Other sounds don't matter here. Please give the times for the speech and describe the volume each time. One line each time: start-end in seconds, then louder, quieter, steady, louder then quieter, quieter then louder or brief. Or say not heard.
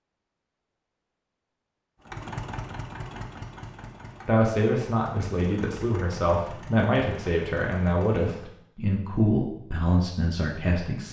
4.2-11.0 steady.